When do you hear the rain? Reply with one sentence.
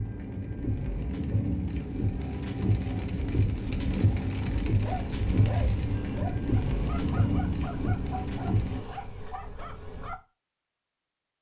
The rain can be heard from 0.0 to 8.8 s.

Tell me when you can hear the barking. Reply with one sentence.
The barking can be heard from 4.8 to 10.2 s.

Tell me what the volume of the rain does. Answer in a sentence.
The volume of the rain stays about the same.